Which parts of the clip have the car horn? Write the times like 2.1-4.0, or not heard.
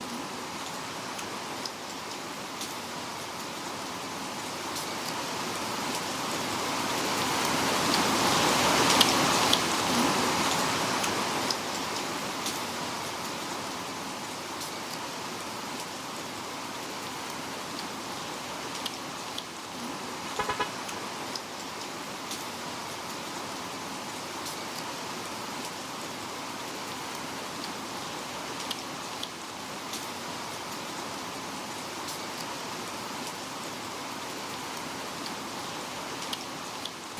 20.2-21.0.